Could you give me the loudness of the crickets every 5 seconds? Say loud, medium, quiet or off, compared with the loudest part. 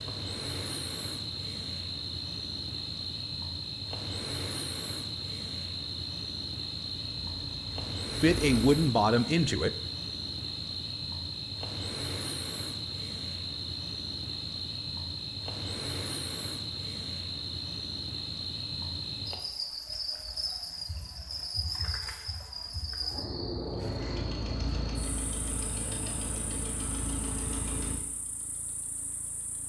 loud, loud, loud, loud, loud, quiet.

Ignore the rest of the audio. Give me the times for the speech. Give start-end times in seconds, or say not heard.
8.2-9.8.